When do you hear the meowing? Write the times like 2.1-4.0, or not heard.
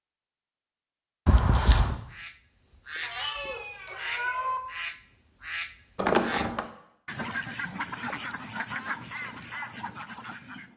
3.0-4.6.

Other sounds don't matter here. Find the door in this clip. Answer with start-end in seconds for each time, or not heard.
1.2-2.0, 6.0-6.7.